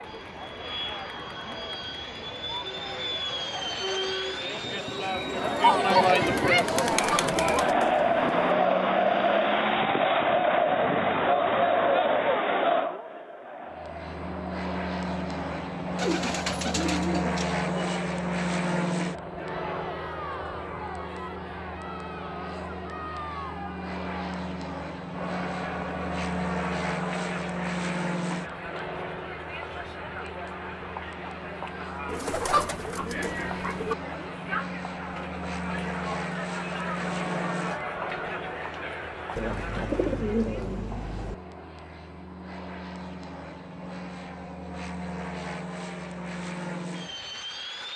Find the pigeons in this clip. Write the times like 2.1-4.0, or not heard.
6.9-8.6, 15.9-17.9, 32.0-34.0, 39.4-41.4.